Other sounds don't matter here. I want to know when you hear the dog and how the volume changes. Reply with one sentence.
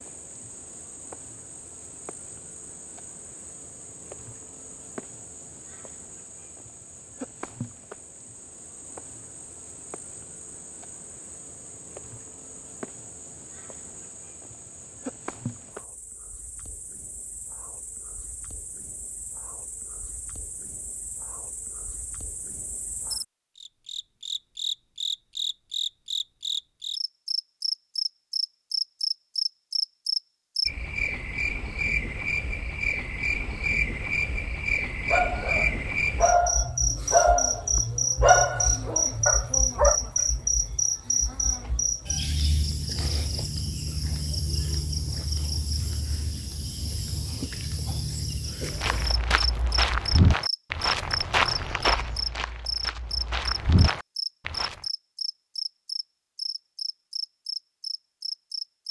You can hear the dog from 35.0 to 40.0 s, getting louder then quieter.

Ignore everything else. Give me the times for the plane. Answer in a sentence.
You can't hear the plane here.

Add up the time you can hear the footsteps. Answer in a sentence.
You can hear the footsteps for 6 seconds altogether.